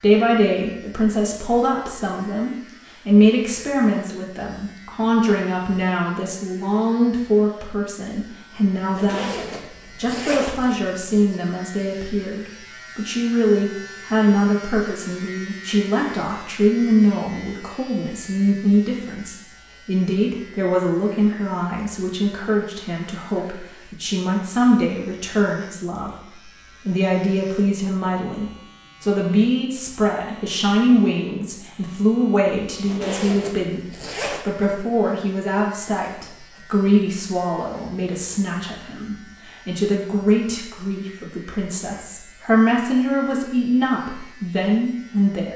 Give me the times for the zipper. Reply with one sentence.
You can hear the zipper from 8.8 to 11.1 s and from 32.7 to 34.5 s.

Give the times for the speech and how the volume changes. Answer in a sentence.
You can hear the speech from 0.0 to 45.5 s, at a steady volume.